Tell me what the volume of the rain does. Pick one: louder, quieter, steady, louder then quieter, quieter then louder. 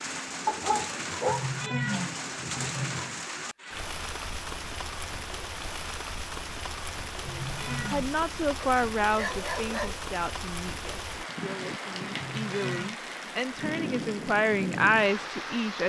steady.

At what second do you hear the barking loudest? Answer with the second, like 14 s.
1 s.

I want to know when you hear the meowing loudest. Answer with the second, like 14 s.
2 s.